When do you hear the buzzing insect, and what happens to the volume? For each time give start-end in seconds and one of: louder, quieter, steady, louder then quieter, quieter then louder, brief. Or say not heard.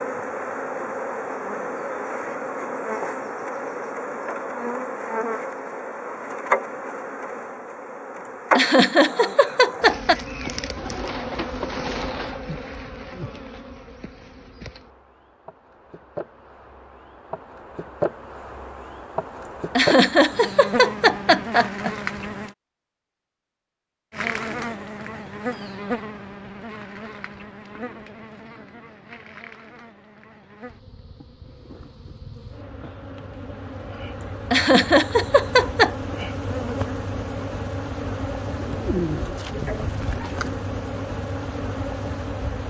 0.0-22.6 quieter then louder
24.1-42.6 quieter then louder.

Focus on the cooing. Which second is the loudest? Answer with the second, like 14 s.
39 s.